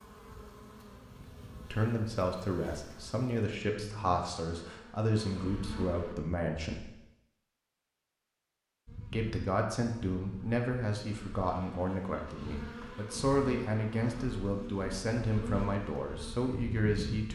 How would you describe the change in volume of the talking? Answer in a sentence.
The loudness of the talking stays about the same.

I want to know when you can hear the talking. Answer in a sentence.
The talking can be heard from 1.7 to 6.9 s and from 9.1 to 17.3 s.